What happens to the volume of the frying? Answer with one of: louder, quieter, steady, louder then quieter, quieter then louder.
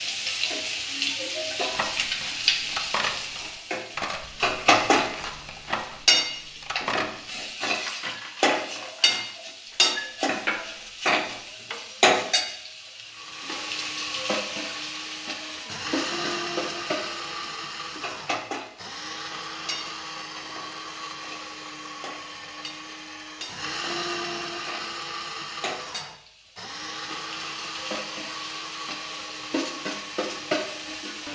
quieter then louder.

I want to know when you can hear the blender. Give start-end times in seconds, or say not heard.
13.1-31.2.